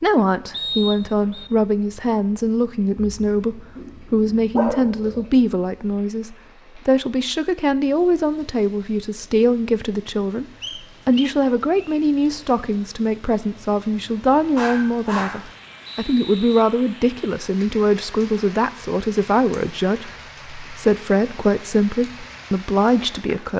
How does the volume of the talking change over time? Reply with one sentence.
The volume of the talking stays about the same.